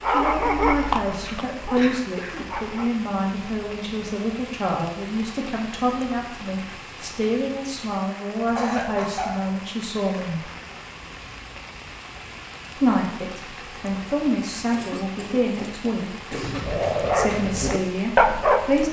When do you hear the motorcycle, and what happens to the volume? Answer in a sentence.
The motorcycle can't be heard in this clip.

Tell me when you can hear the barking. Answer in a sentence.
The barking can be heard from 0.0 to 2.9 s and from 16.3 to 18.8 s.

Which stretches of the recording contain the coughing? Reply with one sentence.
The coughing can be heard from 1.2 to 2.5 s, from 8.6 to 9.4 s and from 14.7 to 16.9 s.